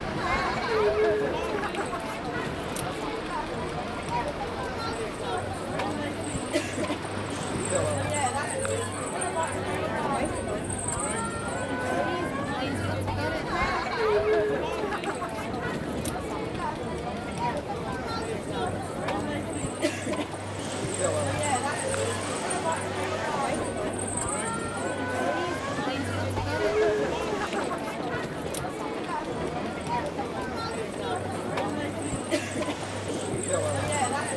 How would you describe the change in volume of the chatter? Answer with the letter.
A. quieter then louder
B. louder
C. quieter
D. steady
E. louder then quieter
D.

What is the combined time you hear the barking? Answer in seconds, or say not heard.
not heard.